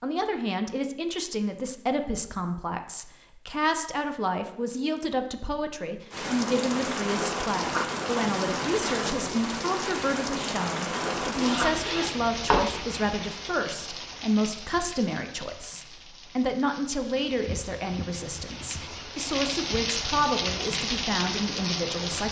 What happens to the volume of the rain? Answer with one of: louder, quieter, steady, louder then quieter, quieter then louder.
quieter then louder.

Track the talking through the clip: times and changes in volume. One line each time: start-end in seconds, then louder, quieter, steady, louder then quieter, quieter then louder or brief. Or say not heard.
0.0-22.2 steady.